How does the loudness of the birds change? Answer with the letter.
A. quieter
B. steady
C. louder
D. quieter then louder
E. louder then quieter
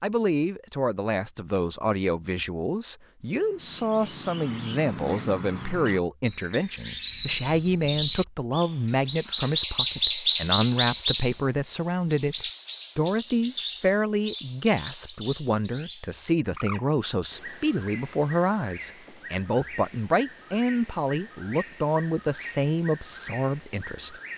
E.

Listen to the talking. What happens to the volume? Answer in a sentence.
The loudness of the talking stays about the same.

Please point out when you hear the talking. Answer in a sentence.
You can hear the talking from 0.0 to 24.3 s.